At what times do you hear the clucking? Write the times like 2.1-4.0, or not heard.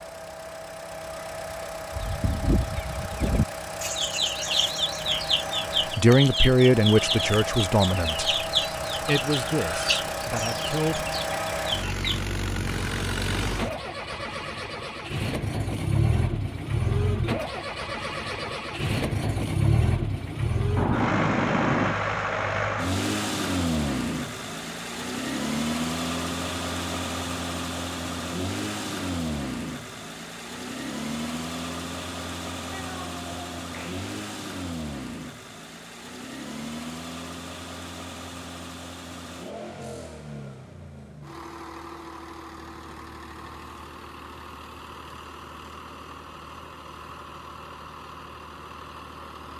1.9-12.2.